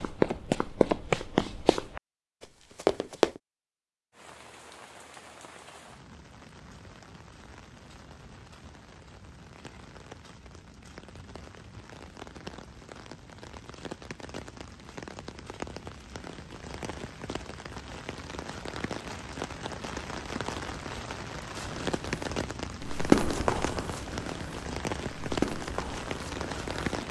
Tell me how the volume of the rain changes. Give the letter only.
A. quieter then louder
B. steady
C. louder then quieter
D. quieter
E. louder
E.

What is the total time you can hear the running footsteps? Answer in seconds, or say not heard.
9 s.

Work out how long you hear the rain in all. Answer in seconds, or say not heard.
23 s.